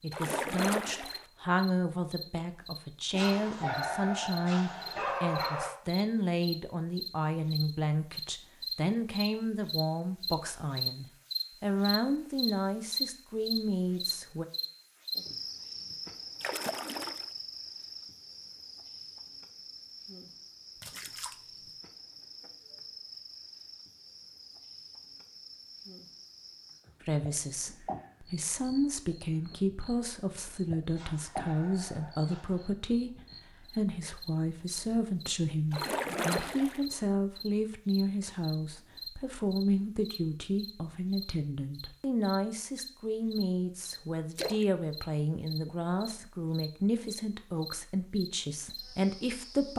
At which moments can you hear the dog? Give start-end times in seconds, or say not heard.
3.1-5.7, 30.9-32.8.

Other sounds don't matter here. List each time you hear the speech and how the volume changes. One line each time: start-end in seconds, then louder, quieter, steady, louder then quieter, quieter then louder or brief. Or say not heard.
0.0-14.4 steady
27.1-49.7 steady.